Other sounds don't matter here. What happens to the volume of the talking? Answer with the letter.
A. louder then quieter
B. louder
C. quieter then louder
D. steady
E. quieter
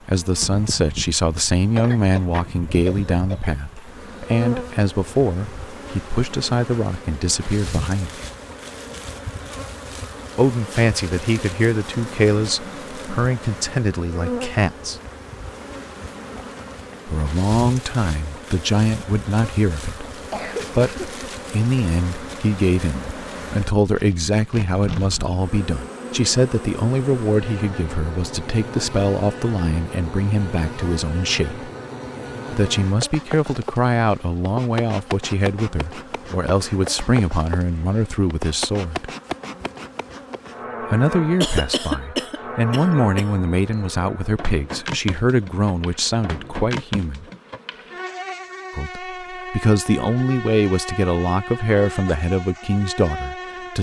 D.